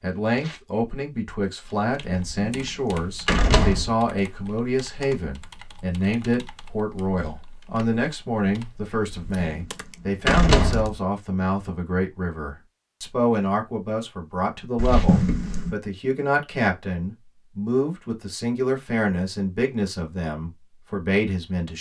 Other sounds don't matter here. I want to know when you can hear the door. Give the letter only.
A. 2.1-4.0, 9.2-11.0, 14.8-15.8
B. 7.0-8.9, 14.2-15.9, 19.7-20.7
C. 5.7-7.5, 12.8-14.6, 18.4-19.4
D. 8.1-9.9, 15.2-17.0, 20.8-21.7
A.